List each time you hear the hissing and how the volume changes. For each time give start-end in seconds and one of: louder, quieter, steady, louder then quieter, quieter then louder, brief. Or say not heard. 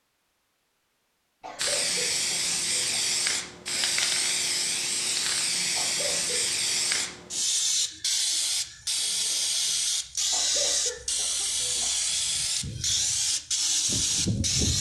1.6-14.7 steady.